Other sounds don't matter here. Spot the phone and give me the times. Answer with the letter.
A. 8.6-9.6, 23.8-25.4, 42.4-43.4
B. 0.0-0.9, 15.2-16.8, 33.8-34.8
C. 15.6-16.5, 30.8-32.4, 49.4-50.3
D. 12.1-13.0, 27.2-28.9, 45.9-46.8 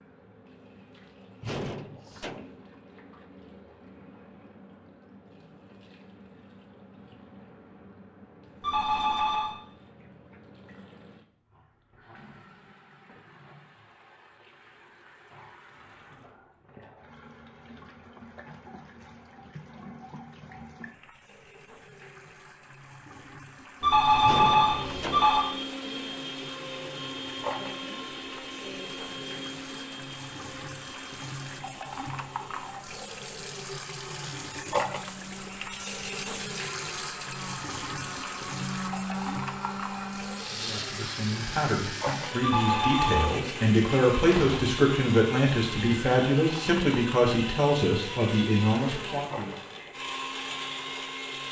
A.